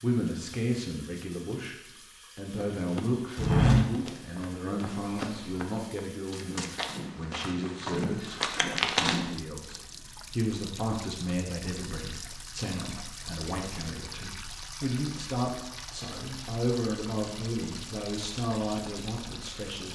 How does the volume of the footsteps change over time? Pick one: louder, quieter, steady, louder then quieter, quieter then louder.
quieter then louder.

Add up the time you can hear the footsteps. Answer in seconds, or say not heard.
7 s.